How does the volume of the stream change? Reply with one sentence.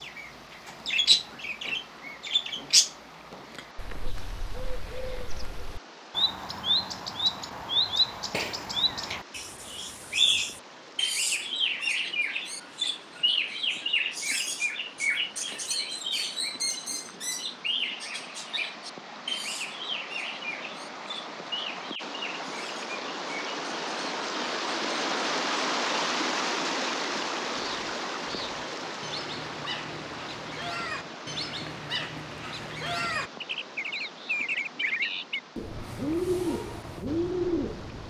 The volume of the stream goes up, then down.